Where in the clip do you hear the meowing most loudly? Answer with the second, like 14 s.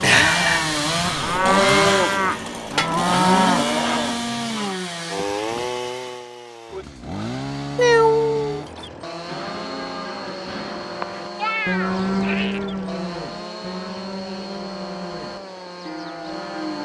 8 s.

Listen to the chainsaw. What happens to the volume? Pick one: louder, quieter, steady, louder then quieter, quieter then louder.
quieter.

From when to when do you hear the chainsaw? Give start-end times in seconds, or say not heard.
0.0-16.7.